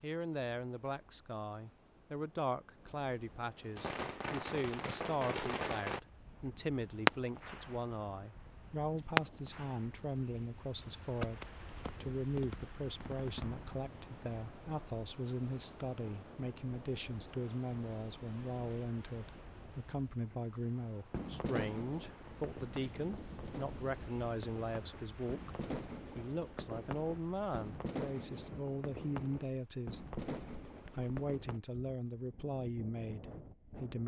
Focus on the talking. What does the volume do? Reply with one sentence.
The loudness of the talking stays about the same.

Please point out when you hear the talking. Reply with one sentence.
The talking can be heard from 0.0 to 11.4 s, from 12.0 to 30.0 s and from 30.9 to 34.0 s.